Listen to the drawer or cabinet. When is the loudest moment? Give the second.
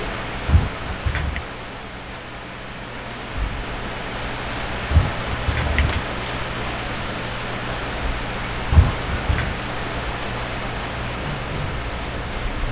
9 s.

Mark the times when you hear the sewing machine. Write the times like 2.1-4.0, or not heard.
not heard.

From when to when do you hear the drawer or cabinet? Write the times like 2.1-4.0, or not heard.
0.5-1.4, 4.9-6.0, 8.7-9.6.